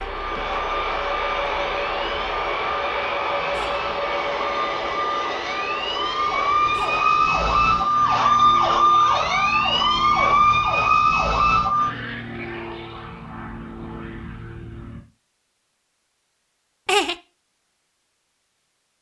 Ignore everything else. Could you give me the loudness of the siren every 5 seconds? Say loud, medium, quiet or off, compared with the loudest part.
quiet, loud, loud, off.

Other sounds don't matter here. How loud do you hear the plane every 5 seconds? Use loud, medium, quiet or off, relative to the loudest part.
loud, medium, medium, off.